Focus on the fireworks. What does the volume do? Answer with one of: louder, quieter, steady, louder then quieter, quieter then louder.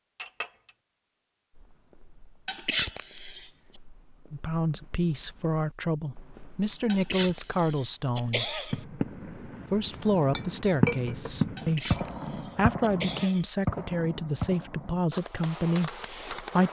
louder then quieter.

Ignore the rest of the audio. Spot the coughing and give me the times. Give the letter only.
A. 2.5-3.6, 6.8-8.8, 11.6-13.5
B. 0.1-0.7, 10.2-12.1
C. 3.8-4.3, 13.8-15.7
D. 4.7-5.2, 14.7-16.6
A.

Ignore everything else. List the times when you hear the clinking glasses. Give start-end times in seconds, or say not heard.
0.1-0.7, 10.2-12.1.